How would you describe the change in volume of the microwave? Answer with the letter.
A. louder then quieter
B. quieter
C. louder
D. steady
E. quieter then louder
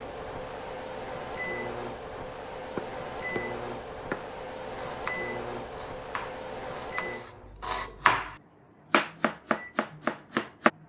B.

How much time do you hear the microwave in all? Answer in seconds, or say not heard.
11 s.